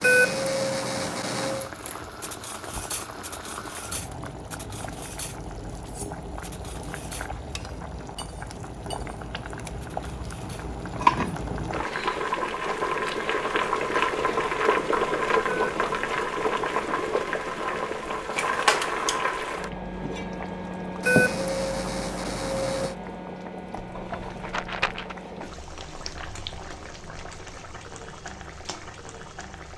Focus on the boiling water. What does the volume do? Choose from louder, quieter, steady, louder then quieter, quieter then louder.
louder then quieter.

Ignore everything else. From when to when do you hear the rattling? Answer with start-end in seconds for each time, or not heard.
23.9-25.1.